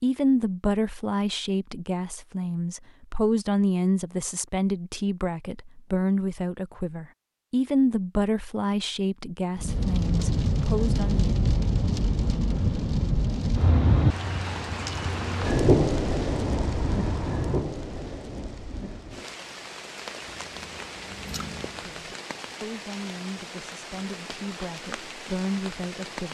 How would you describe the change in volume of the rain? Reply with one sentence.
The loudness of the rain goes down.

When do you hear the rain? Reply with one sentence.
You can hear the rain from 9.6 to 26.2 s.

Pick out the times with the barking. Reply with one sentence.
You can't hear the barking here.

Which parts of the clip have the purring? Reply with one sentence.
You can hear the purring from 20.2 to 21.9 s.